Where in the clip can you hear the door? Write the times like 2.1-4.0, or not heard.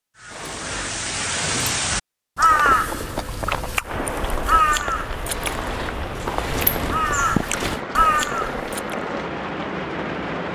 0.3-1.8, 5.3-7.8.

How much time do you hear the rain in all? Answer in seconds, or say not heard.
7 s.